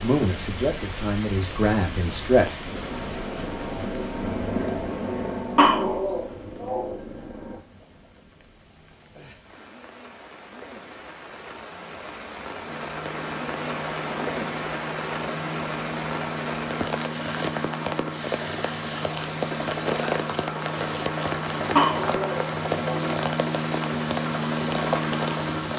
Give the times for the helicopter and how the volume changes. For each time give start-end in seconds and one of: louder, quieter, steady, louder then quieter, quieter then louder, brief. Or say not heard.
2.6-7.7 louder then quieter
12.6-25.7 louder.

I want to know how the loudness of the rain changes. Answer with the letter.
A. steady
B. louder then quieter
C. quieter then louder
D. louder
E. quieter
C.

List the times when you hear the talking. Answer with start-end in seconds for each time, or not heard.
0.0-2.5.